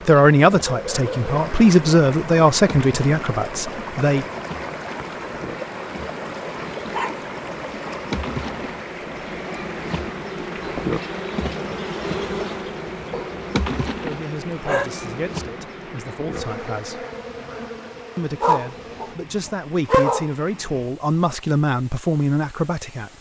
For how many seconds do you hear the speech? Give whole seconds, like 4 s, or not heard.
12 s.